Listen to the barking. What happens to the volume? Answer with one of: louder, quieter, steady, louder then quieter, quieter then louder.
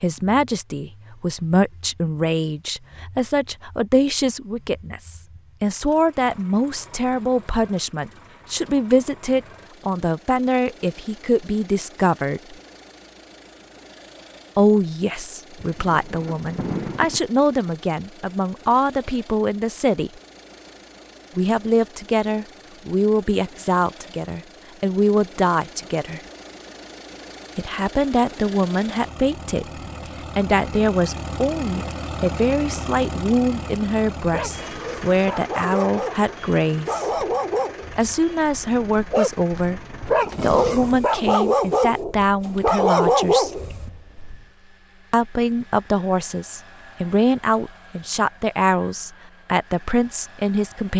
louder.